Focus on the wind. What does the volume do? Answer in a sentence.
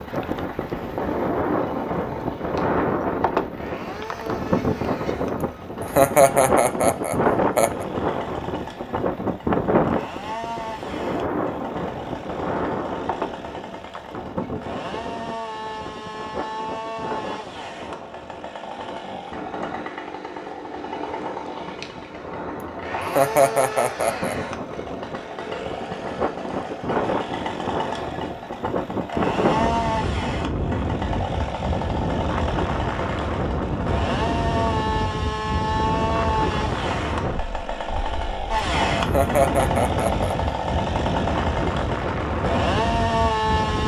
The loudness of the wind goes down, then up.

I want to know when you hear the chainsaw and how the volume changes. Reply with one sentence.
You can hear the chainsaw from 0.0 to 43.8 s, getting louder.